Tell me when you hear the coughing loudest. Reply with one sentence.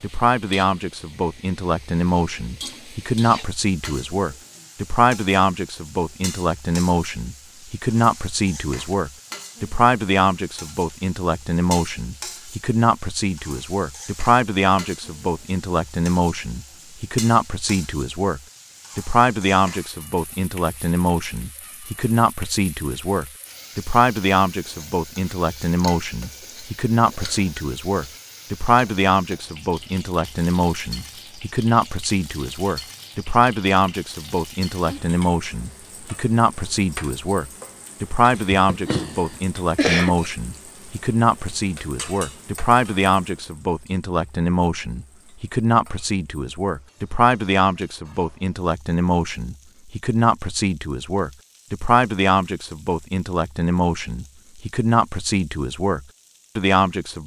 The loudest moment of the coughing is at 40 seconds.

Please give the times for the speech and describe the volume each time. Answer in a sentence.
The speech can be heard from 0.0 to 57.2 s, at a steady volume.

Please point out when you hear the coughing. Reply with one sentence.
The coughing can be heard from 38.3 to 40.2 s.